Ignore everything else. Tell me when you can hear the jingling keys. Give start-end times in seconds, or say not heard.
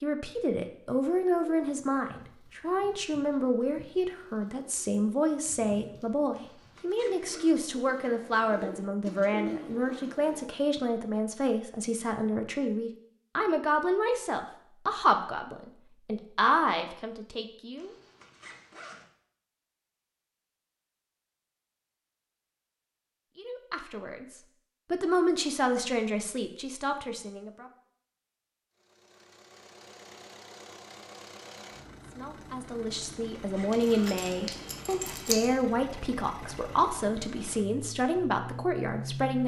33.7-35.5.